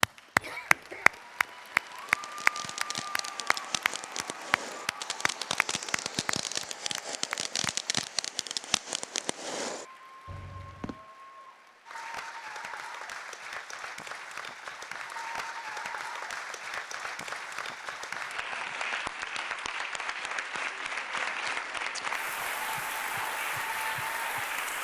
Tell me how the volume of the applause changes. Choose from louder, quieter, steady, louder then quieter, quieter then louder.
quieter then louder.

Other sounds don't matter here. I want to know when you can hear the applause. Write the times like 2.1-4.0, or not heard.
0.0-24.7.